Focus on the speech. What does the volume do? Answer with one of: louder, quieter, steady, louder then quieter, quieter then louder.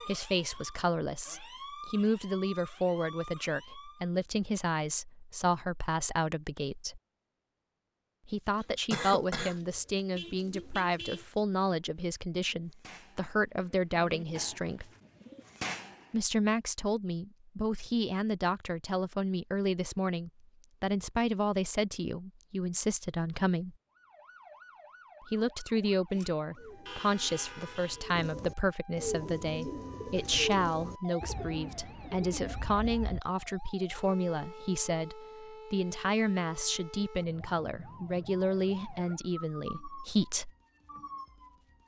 steady.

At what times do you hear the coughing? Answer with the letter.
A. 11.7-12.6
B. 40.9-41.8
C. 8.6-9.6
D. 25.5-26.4
C.